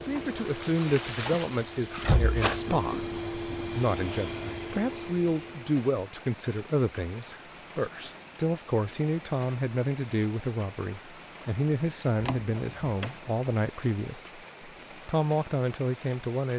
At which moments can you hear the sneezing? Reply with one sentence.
You can hear the sneezing from 1.6 to 2.6 s.